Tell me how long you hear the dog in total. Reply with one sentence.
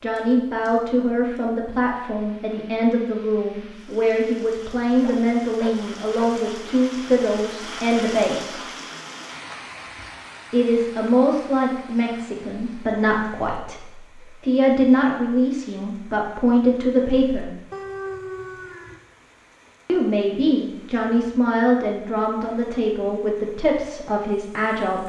You can hear the dog for 3 seconds altogether.